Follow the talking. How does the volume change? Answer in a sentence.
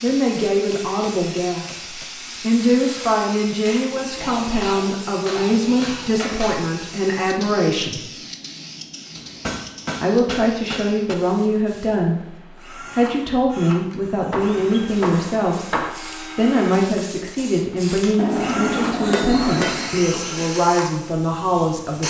The volume of the talking stays about the same.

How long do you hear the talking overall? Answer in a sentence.
You can hear the talking for 20 seconds altogether.